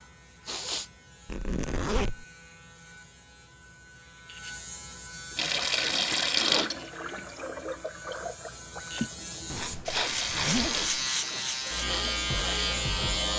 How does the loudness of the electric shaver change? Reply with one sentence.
The loudness of the electric shaver goes up.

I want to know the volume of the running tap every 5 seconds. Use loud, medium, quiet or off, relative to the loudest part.
off, loud, medium.